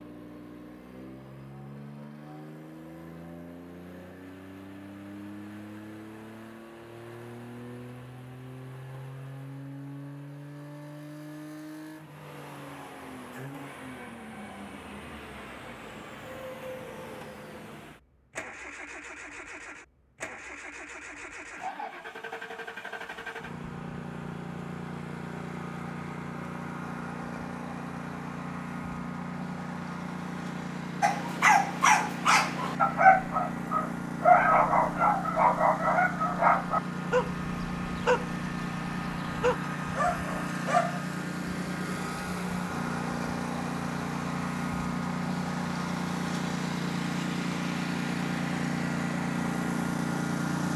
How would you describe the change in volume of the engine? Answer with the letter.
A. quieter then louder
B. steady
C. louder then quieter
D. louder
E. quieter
D.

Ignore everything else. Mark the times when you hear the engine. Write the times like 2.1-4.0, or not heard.
0.0-50.7.